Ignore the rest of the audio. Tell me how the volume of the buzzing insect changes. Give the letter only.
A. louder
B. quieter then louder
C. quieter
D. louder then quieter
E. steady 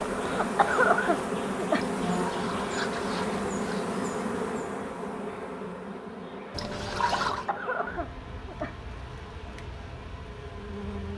C.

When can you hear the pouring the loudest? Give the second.
7 s.